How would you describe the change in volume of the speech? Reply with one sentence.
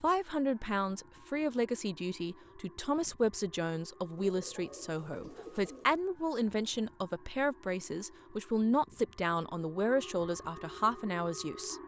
The volume of the speech stays about the same.